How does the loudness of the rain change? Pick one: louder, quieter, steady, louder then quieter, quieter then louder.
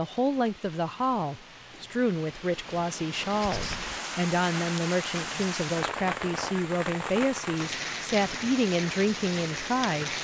louder.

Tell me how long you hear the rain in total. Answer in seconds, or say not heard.
10 s.